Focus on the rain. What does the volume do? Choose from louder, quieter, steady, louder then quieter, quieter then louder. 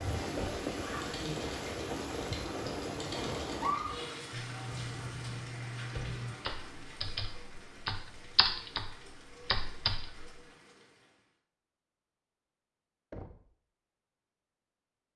quieter.